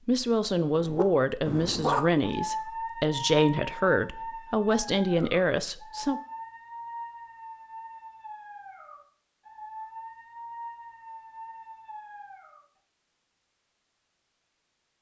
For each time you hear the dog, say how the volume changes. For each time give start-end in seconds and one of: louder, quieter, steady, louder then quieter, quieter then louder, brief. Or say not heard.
0.7-12.6 quieter.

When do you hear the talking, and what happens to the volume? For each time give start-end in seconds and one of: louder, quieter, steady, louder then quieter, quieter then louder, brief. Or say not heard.
0.1-6.2 steady.